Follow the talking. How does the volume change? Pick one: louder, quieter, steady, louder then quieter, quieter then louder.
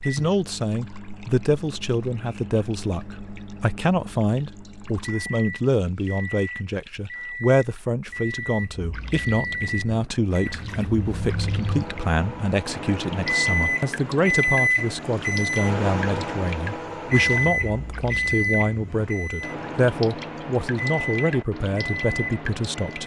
steady.